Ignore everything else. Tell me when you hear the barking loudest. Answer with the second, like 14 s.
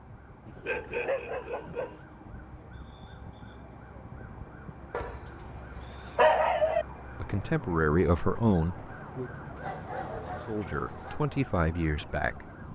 6 s.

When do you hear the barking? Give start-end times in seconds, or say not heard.
0.5-2.0, 4.9-6.8, 9.6-11.2.